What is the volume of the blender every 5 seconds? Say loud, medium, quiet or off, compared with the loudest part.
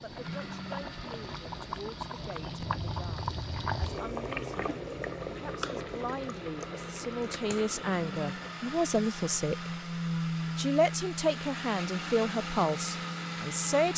medium, medium, loud.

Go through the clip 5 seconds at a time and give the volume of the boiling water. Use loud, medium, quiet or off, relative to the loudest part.
loud, loud, off.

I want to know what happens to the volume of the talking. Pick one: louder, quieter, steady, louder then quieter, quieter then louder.
louder.